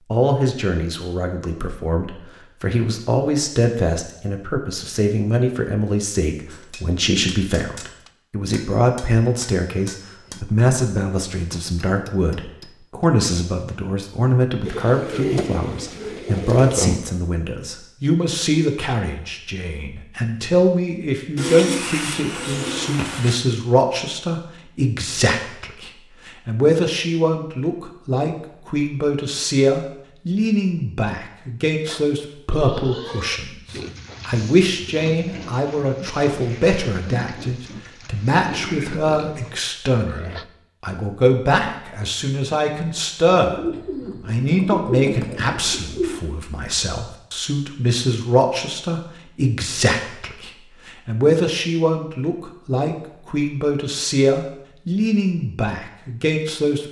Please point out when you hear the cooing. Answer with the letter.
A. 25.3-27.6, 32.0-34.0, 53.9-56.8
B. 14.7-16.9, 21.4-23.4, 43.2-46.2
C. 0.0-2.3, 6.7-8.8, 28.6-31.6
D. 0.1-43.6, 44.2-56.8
B.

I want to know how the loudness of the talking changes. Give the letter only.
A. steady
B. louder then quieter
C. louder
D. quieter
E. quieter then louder
A.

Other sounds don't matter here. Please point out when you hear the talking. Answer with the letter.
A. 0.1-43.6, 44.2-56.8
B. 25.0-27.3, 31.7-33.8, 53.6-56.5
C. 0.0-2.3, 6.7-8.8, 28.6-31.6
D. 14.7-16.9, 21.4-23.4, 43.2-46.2
A.